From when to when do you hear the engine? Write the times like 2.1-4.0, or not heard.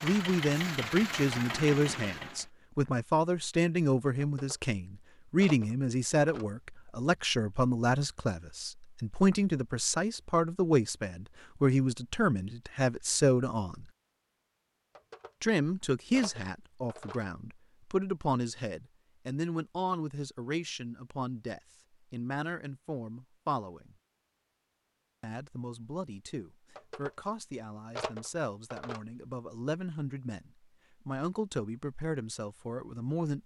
0.0-2.5.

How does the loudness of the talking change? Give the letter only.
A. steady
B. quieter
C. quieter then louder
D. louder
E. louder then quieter
B.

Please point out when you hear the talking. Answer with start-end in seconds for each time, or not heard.
0.0-13.8, 15.4-23.9, 25.2-33.4.